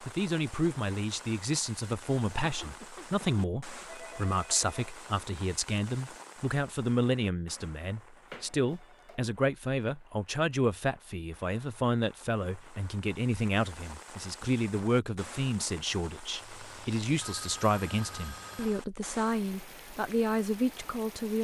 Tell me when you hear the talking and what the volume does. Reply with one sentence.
You can hear the talking from 0.0 to 21.3 s, at a steady volume.